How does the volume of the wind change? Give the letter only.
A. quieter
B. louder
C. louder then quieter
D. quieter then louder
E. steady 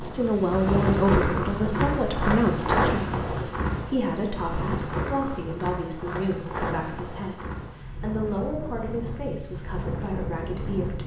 A.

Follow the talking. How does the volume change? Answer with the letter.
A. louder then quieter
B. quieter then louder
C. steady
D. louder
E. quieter
E.